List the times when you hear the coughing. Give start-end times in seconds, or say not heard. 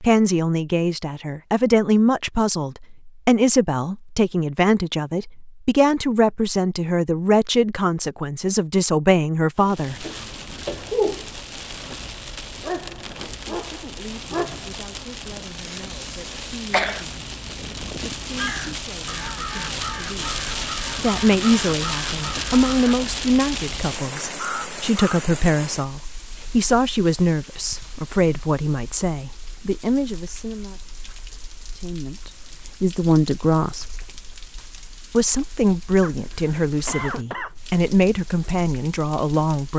9.6-11.3, 15.3-17.1, 36.0-37.5.